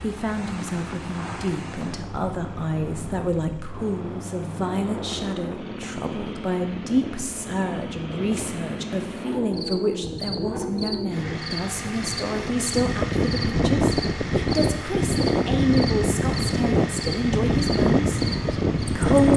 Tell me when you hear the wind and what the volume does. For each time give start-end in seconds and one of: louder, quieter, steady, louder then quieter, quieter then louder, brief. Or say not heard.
0.0-19.3 louder.